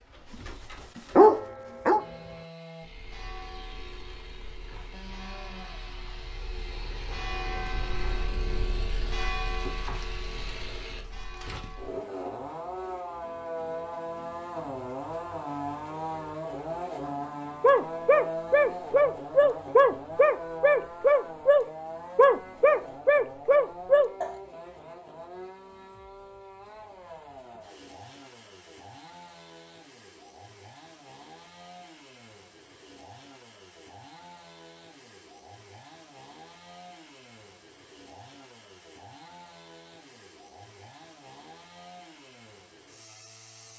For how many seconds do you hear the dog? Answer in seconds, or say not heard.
9 s.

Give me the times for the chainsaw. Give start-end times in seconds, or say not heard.
1.9-43.7.